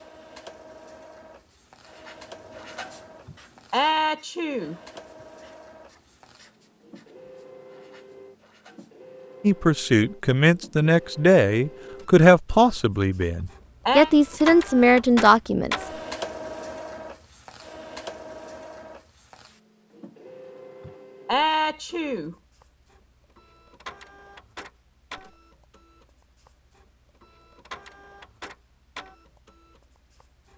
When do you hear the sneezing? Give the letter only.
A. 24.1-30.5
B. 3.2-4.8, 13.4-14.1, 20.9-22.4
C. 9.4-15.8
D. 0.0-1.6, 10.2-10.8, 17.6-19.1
B.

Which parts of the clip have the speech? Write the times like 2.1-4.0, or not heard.
9.4-15.8.